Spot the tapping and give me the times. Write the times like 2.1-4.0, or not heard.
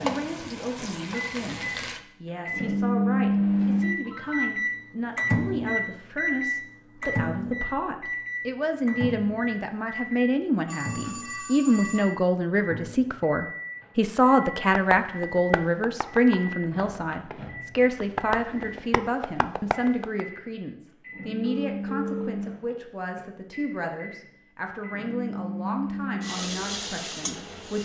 14.7-20.2.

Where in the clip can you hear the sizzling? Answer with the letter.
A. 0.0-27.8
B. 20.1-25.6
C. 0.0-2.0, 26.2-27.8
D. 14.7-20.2
C.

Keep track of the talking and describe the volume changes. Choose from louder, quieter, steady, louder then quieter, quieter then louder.
louder then quieter.